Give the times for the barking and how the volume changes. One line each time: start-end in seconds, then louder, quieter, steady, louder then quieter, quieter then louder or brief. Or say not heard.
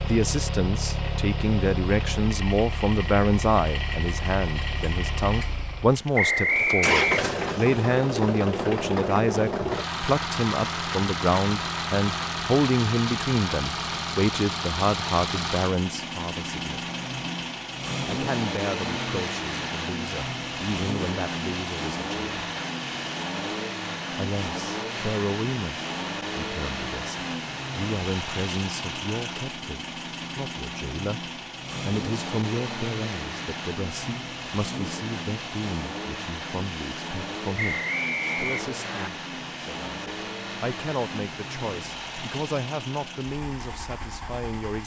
not heard.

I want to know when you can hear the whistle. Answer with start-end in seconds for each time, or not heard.
6.2-7.5, 37.5-39.1.